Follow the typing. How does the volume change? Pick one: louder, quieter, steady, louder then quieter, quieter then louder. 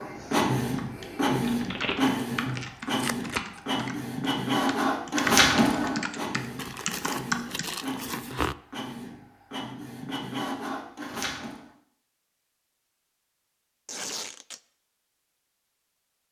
louder.